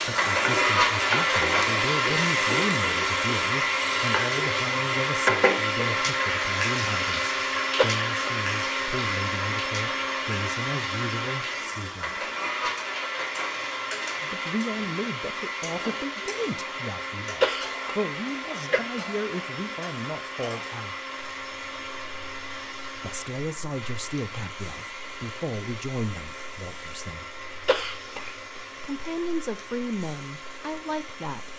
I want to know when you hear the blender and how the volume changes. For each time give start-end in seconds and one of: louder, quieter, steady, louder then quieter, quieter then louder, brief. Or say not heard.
0.0-31.5 quieter.